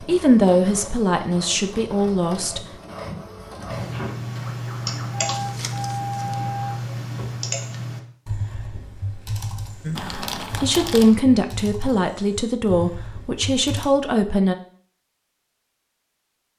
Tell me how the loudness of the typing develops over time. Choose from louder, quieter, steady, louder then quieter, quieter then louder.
quieter.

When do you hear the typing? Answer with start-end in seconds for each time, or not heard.
3.7-13.9.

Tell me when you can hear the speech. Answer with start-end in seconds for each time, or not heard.
0.1-2.6, 9.8-14.6.